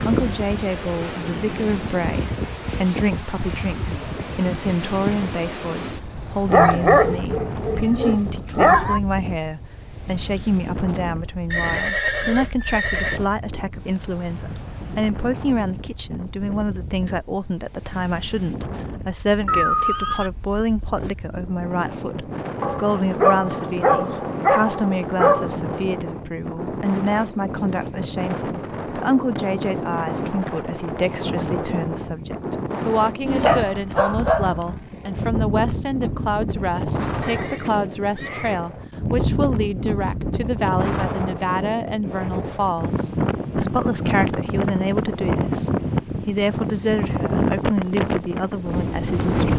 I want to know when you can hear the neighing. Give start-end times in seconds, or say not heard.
11.5-13.2, 19.4-20.3, 37.2-38.6.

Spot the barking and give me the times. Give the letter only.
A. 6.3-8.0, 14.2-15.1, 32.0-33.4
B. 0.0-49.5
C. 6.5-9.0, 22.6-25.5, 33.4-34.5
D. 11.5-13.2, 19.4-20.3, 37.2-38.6
C.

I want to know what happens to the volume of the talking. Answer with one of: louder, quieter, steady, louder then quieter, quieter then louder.
steady.